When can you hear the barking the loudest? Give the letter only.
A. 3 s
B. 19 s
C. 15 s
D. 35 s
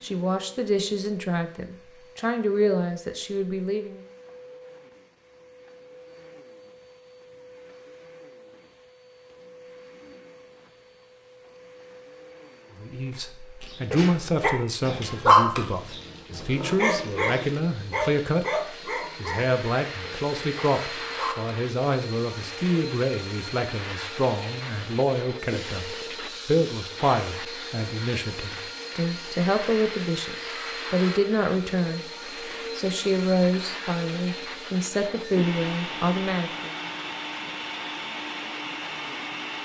C.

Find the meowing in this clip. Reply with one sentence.
The meowing can't be heard in this clip.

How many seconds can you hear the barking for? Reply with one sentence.
The barking can be heard for 8 seconds in total.